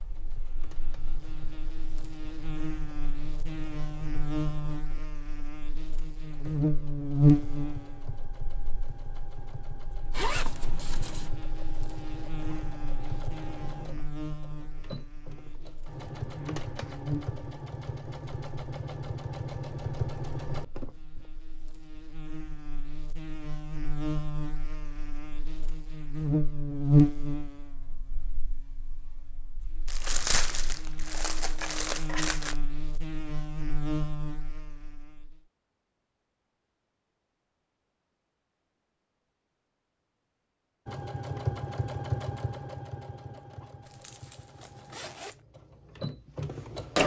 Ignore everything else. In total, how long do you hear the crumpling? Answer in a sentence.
You can hear the crumpling for 3 seconds altogether.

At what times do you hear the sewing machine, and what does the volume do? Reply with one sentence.
The sewing machine can be heard from 0.0 to 21.2 s, getting louder; and from 40.9 to 47.0 s, getting quieter then louder.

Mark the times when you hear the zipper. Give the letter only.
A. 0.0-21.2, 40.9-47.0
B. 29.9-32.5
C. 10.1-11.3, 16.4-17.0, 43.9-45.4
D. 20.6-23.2
C.